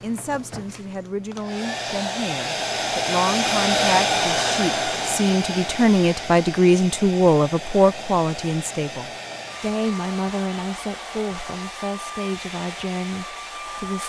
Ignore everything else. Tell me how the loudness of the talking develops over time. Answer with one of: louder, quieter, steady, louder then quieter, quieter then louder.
louder then quieter.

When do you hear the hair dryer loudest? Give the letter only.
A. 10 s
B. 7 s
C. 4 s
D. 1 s
C.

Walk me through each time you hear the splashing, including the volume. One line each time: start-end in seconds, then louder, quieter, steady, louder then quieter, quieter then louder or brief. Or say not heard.
not heard.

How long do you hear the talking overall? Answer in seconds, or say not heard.
14 s.